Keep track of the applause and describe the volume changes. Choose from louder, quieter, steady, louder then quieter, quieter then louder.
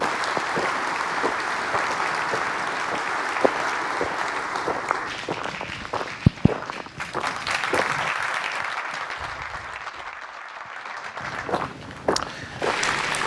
quieter.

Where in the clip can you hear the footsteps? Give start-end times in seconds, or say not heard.
0.0-8.1, 11.2-13.2.